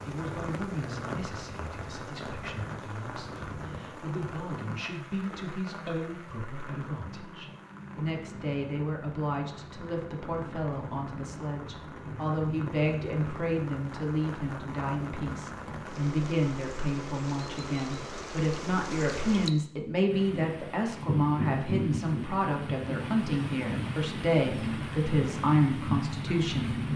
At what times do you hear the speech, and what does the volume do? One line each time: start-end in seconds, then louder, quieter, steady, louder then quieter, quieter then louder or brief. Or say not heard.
0.0-26.8 louder.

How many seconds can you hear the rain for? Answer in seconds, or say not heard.
27 s.